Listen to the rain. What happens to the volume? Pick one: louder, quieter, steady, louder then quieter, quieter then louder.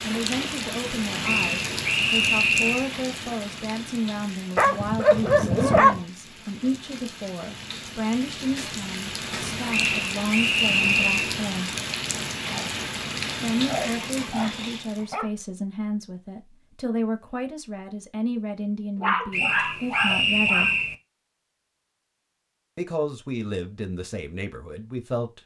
quieter then louder.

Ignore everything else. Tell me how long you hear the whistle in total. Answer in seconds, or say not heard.
5 s.